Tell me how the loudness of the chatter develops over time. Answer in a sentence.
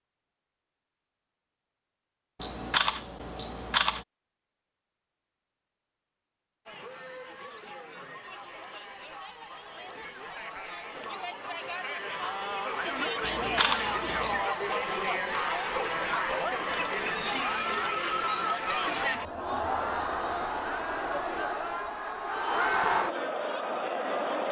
The volume of the chatter goes up.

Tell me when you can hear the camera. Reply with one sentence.
The camera can be heard from 2.4 to 4.0 s, from 13.2 to 14.4 s and from 16.4 to 18.1 s.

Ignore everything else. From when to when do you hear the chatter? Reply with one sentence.
You can hear the chatter from 6.7 to 24.4 s.